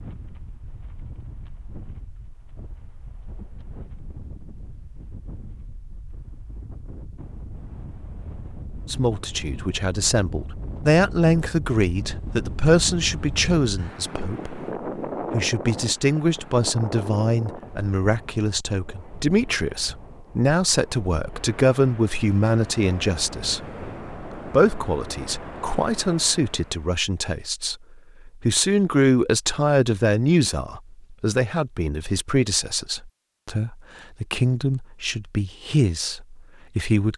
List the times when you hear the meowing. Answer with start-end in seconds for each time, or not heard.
not heard.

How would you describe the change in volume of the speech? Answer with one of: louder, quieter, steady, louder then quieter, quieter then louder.
steady.